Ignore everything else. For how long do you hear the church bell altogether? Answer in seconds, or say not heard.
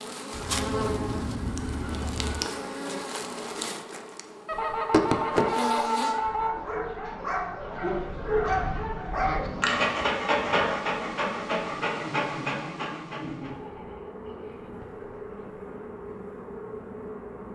not heard.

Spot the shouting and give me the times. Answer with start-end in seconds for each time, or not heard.
not heard.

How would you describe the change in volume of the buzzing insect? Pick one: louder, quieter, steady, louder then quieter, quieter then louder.
quieter.